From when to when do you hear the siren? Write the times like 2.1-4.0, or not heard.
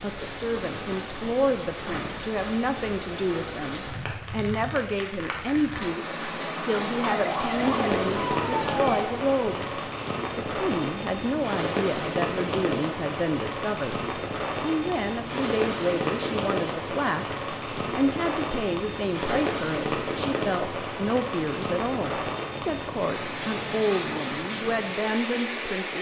7.0-9.1.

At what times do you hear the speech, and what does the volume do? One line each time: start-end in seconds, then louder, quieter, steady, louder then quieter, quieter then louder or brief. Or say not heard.
0.0-25.9 steady.